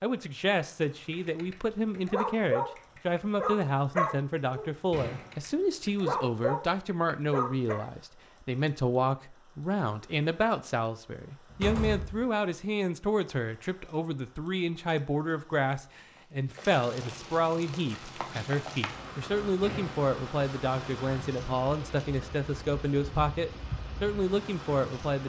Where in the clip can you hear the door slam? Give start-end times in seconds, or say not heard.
4.9-5.3, 11.5-12.2, 19.6-20.1.